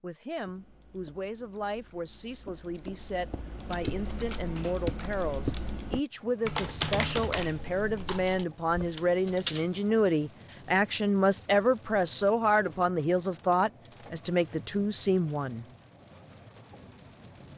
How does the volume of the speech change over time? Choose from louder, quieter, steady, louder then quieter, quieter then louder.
louder.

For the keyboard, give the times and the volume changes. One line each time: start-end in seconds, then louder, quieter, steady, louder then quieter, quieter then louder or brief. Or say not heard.
0.3-9.7 louder then quieter.